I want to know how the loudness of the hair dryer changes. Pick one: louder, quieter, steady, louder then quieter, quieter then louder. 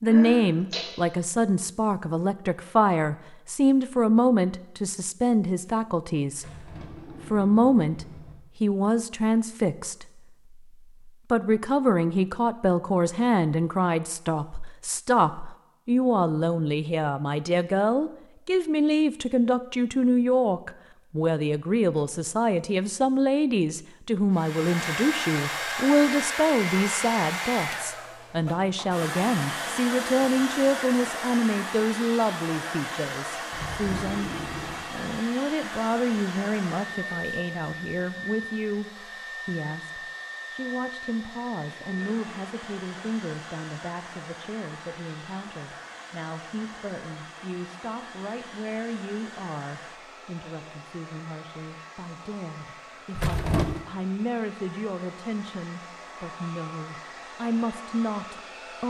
quieter.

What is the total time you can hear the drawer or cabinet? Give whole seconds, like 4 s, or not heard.
4 s.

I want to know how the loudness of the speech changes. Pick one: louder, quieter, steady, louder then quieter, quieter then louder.
quieter.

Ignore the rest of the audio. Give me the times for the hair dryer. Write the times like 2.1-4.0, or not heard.
24.3-58.8.